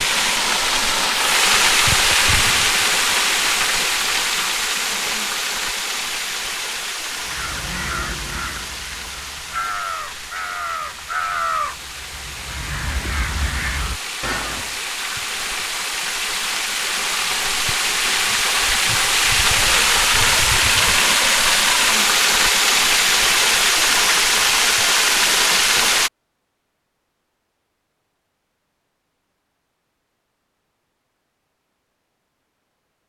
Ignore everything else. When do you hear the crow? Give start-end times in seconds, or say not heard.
7.2-14.8.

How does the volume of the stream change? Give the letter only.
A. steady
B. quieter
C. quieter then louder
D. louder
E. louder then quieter
C.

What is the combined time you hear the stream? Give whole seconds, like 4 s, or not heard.
26 s.